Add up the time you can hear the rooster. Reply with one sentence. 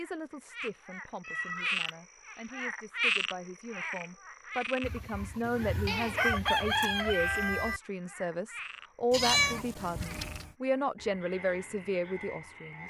You can hear the rooster for 3 seconds altogether.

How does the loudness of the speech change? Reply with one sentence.
The volume of the speech goes up.